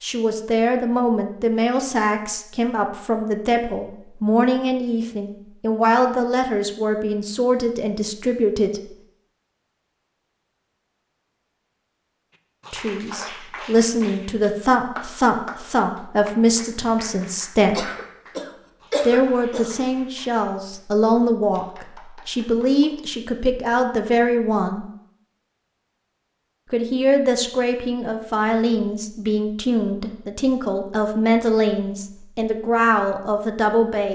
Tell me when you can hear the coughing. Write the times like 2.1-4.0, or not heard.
17.7-19.7.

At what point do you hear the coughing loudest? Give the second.
19 s.